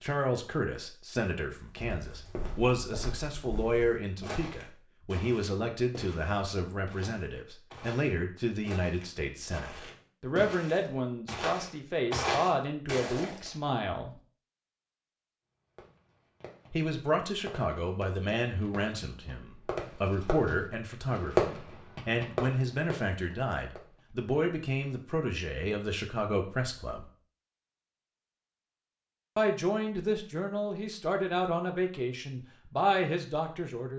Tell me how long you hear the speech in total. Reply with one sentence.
The speech can be heard for 29 seconds in total.